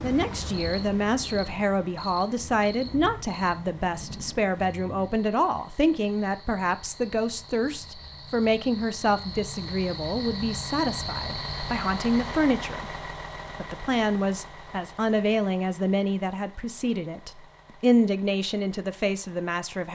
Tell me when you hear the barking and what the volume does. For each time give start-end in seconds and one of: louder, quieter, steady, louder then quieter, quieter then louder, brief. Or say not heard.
not heard.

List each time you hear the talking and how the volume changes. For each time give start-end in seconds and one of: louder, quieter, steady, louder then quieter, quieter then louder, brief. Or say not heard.
0.0-19.8 steady.